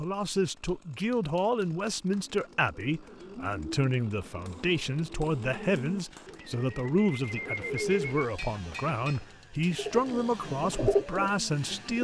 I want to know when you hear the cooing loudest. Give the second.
11 s.